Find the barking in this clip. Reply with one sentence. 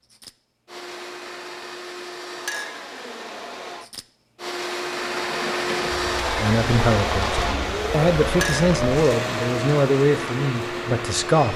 You can't hear the barking here.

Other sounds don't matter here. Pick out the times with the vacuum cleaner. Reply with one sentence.
You can hear the vacuum cleaner from 0.0 to 11.5 s.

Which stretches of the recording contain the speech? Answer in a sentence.
The speech can be heard from 6.4 to 11.5 s.